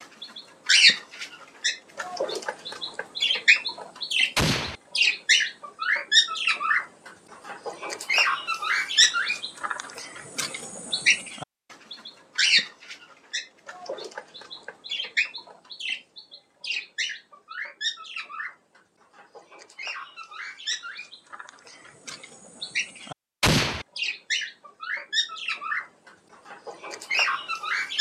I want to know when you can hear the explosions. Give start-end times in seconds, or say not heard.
4.3-4.8, 23.4-23.9.